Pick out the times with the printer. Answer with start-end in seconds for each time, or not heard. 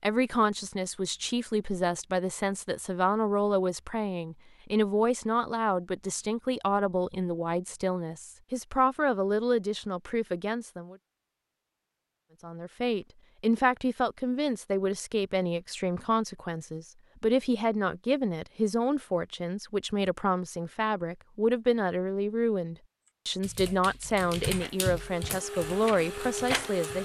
24.4-27.0.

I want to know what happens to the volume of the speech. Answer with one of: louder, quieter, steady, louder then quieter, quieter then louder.
steady.